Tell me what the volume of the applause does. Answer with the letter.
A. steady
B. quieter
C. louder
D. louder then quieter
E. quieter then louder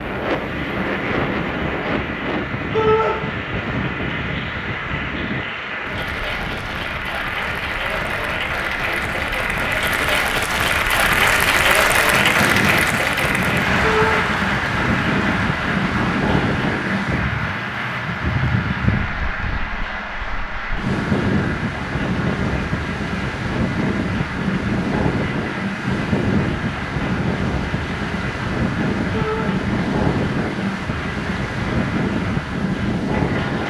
D.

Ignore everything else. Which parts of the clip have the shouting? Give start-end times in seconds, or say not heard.
2.7-3.1, 13.8-14.2, 29.1-29.6.